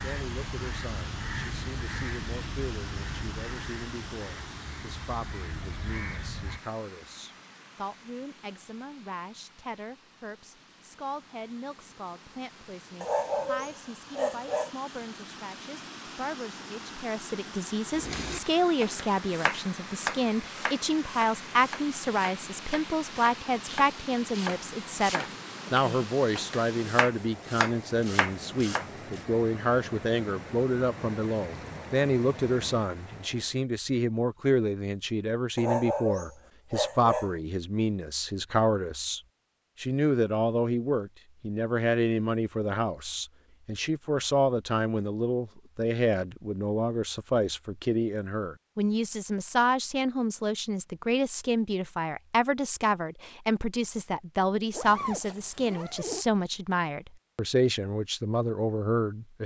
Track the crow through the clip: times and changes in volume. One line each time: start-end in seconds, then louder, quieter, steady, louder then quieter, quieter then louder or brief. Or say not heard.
0.0-6.6 quieter then louder.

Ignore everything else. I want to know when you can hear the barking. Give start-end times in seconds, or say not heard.
13.0-14.7, 35.5-37.4.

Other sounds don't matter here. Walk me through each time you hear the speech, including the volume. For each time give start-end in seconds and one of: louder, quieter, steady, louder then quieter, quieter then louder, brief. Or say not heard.
0.0-59.4 louder.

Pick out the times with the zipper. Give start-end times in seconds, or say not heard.
54.7-56.2.